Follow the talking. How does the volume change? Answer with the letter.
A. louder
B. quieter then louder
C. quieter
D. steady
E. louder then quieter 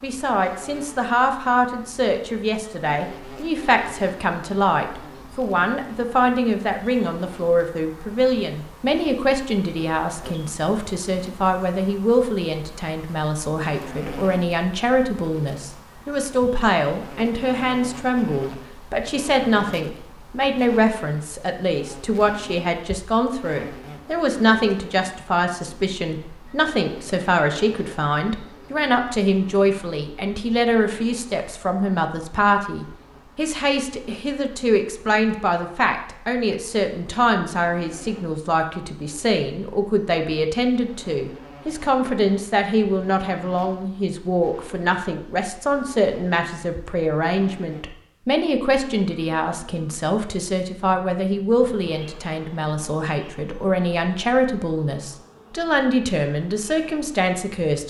D.